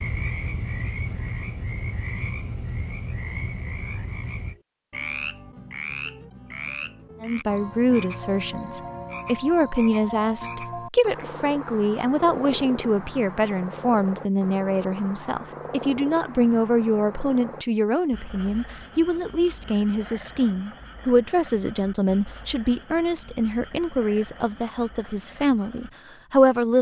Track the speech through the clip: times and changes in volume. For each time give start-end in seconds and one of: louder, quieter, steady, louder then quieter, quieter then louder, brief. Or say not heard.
7.2-26.7 steady.